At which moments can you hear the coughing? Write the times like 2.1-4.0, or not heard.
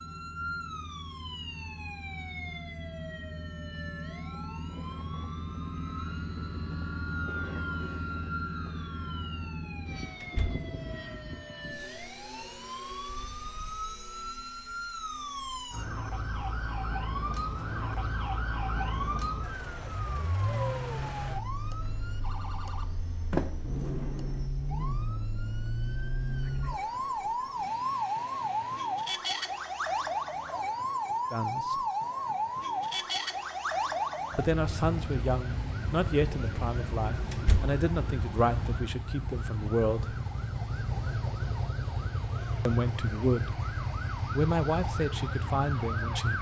not heard.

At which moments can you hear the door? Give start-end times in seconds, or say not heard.
10.2-10.7, 23.3-24.4, 37.3-37.8.